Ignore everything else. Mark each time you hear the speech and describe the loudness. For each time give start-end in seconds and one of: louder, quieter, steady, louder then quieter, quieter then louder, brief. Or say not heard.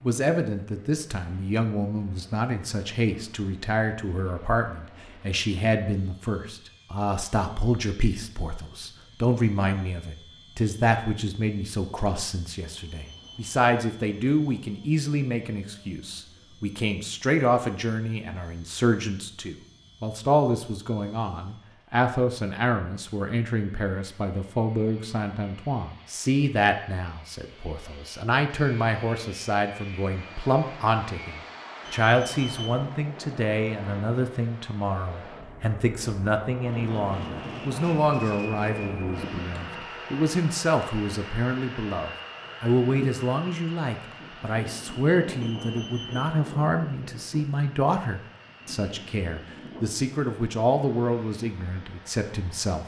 0.0-52.8 steady.